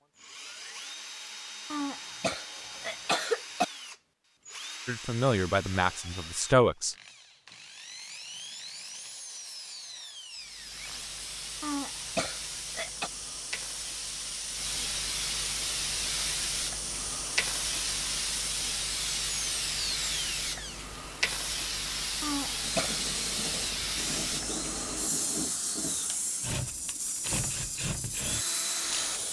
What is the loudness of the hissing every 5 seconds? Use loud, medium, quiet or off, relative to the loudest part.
off, off, medium, loud, loud, loud.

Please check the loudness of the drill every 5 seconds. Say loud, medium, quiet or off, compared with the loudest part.
medium, medium, medium, loud, loud, loud.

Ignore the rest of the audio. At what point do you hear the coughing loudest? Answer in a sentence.
The loudest moment of the coughing is at 3 seconds.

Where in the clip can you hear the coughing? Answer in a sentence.
You can hear the coughing from 1.7 to 3.6 s, from 11.6 to 13.1 s and from 22.2 to 22.9 s.